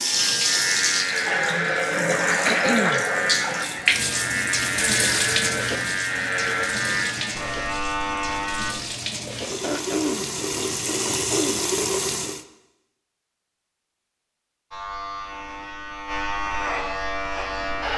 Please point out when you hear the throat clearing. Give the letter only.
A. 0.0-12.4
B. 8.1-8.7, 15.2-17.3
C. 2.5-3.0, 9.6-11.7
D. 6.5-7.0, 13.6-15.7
C.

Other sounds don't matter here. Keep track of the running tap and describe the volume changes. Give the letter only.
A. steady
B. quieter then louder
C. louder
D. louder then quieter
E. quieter
B.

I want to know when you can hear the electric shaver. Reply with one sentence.
You can hear the electric shaver from 0.0 to 8.8 s and from 14.7 to 17.9 s.